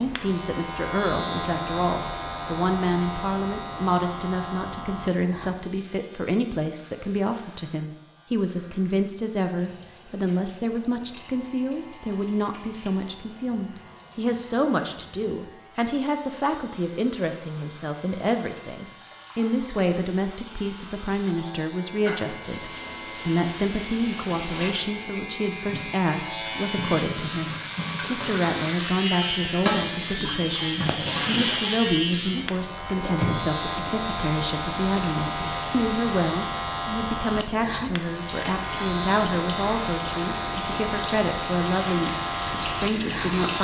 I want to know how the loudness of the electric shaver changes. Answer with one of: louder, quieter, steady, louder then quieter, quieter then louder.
quieter then louder.